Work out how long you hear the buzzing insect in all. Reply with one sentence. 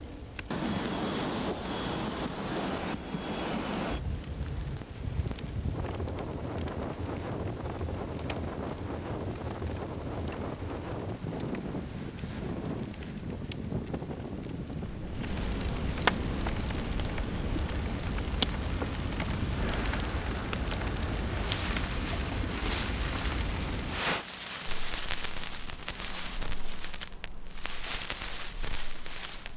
You can't hear the buzzing insect here.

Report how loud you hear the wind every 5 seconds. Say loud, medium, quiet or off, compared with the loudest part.
loud, loud, loud, medium, medium, medium.